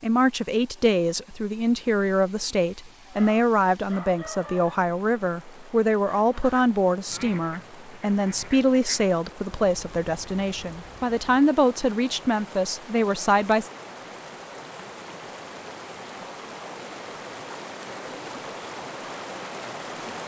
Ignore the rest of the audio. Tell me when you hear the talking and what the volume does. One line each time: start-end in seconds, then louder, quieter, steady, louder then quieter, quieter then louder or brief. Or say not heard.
0.0-13.7 steady.